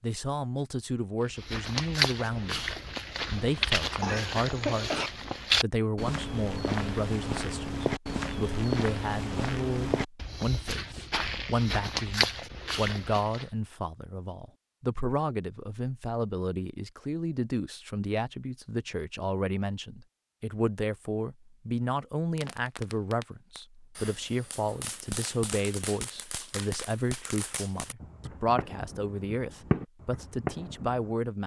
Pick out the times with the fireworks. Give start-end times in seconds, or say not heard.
22.4-31.1.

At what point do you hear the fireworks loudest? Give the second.
30 s.